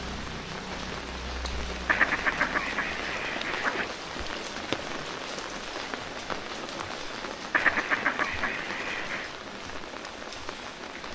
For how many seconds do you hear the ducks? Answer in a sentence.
The ducks can be heard for 4 seconds in total.